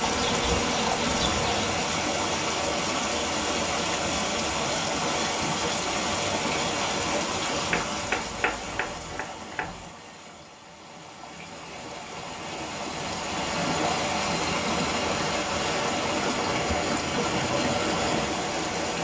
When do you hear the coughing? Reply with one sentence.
The coughing can't be heard in this clip.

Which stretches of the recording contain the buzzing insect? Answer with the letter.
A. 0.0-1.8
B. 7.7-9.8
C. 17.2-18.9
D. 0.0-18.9
A.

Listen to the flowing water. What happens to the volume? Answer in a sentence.
The loudness of the flowing water goes down, then up.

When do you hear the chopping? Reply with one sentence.
You can hear the chopping from 7.7 to 9.8 s.